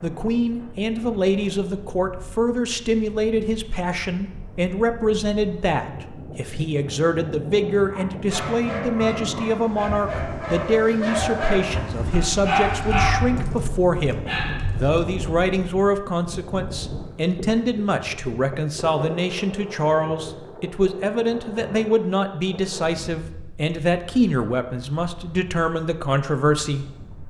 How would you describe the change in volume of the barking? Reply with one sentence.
The volume of the barking goes up, then down.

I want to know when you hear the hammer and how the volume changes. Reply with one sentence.
The hammer can't be heard in this clip.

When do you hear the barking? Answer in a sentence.
The barking can be heard from 7.8 to 15.0 s.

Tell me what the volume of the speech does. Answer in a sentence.
The loudness of the speech stays about the same.